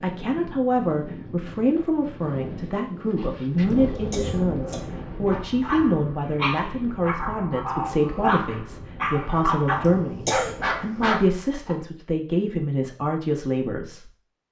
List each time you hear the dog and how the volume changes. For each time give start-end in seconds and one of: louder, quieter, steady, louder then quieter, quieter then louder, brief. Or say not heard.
3.8-11.8 louder.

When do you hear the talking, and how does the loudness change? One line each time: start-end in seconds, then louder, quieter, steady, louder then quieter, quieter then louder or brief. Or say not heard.
0.0-14.1 steady.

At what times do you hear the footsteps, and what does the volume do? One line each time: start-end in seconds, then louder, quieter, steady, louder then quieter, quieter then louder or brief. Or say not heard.
not heard.